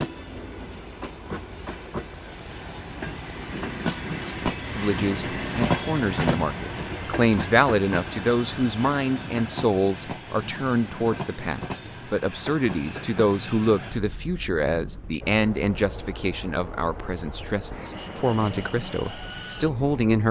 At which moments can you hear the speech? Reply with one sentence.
You can hear the speech from 4.8 to 20.2 s.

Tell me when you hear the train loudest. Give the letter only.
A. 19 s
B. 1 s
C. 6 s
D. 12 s
C.